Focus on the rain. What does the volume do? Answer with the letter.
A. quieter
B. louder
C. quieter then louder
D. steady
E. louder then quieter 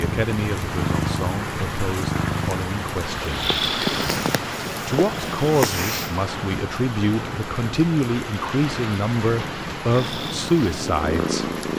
D.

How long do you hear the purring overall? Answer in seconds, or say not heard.
8 s.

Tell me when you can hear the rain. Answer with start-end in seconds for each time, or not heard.
0.0-11.7.